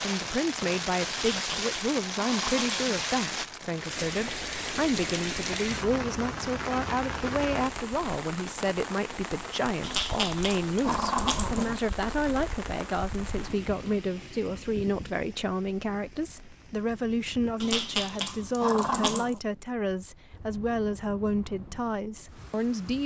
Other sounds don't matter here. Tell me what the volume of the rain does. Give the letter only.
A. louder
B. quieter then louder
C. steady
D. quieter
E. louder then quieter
D.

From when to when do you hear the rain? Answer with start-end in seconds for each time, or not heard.
0.0-23.0.